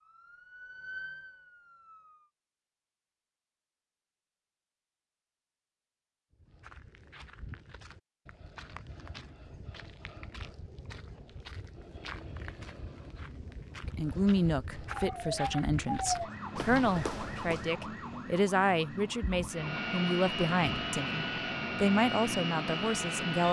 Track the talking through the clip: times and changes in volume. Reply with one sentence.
The talking can be heard from 13.8 to 23.4 s, at a steady volume.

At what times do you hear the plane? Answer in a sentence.
You can hear the plane from 19.5 to 23.4 s.